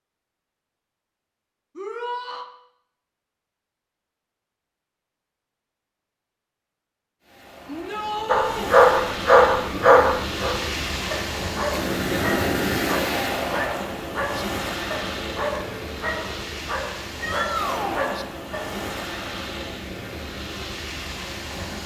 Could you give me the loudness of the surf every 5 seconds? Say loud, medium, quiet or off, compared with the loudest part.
off, medium, loud, medium, medium.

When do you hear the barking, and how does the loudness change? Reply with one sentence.
The barking can be heard from 8.2 to 18.9 s, getting quieter.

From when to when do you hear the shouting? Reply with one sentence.
You can hear the shouting from 1.8 to 2.5 s, from 7.7 to 8.8 s and from 17.2 to 18.1 s.